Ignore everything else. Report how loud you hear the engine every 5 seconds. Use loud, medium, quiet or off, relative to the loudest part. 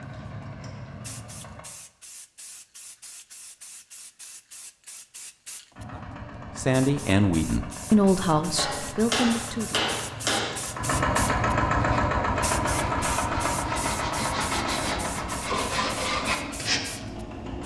quiet, quiet, loud, medium.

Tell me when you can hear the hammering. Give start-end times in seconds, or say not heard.
8.6-10.6.